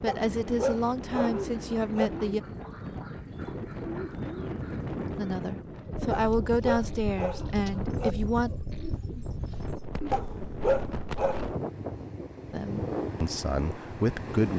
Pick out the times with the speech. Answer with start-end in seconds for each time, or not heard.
0.0-2.4, 5.2-8.5, 12.5-14.5.